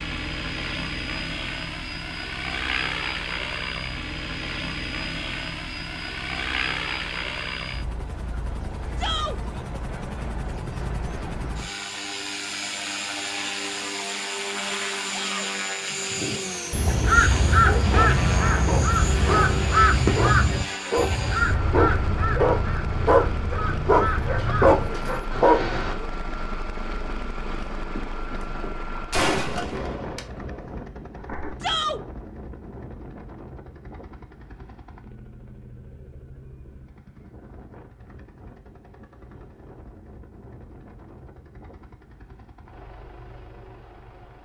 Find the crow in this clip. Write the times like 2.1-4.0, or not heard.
16.1-25.9.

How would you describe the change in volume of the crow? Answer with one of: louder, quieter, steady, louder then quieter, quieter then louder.
quieter.